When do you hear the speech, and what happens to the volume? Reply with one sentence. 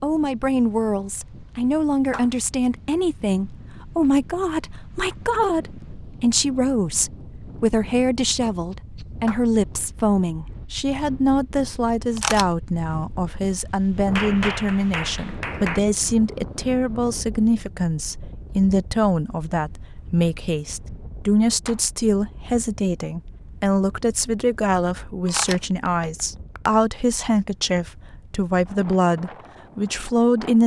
The speech can be heard from 0.0 to 30.6 s, at a steady volume.